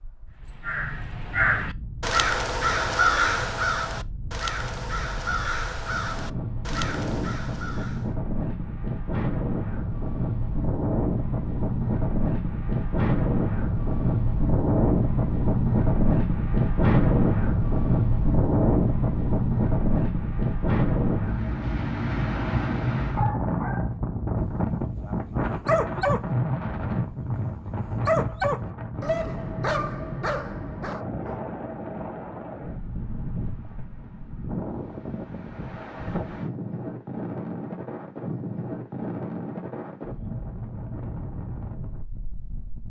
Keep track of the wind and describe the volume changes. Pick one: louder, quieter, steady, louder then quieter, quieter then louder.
louder then quieter.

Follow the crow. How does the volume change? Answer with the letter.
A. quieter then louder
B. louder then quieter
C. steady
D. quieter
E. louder
D.